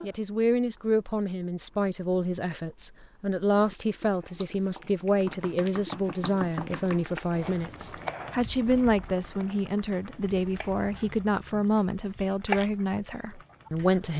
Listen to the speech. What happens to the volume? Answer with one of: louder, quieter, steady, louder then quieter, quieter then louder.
steady.